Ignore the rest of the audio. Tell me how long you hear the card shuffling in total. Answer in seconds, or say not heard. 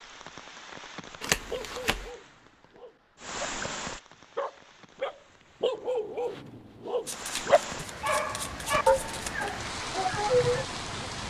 3 s.